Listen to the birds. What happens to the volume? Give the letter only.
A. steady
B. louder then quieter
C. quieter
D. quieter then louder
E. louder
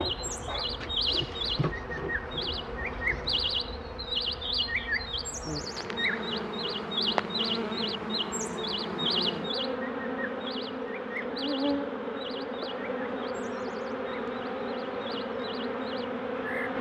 C.